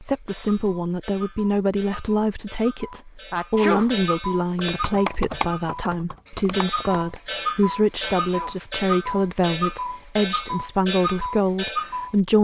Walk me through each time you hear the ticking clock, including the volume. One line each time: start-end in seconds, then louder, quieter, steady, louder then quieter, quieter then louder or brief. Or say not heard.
0.0-12.2 louder.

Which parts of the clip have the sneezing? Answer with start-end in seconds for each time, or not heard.
3.3-3.9, 8.0-8.6.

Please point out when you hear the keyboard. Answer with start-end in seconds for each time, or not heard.
4.5-7.2.